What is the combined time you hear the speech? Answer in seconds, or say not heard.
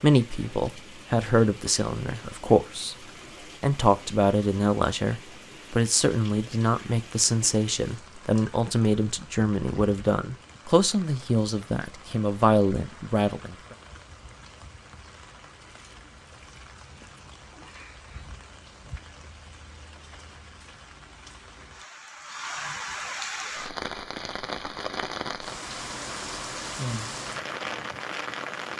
13 s.